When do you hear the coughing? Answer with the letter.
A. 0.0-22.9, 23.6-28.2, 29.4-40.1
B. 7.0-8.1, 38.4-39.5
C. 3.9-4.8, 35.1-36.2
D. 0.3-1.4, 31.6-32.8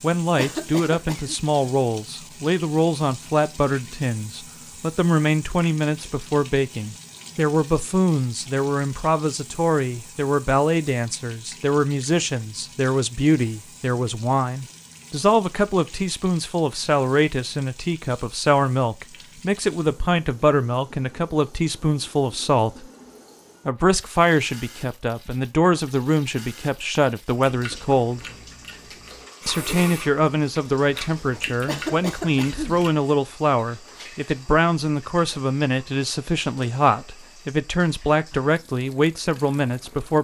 D.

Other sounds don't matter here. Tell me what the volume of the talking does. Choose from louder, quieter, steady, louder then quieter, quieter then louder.
steady.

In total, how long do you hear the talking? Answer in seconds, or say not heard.
38 s.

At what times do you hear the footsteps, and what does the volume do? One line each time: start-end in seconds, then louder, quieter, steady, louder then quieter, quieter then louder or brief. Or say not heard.
not heard.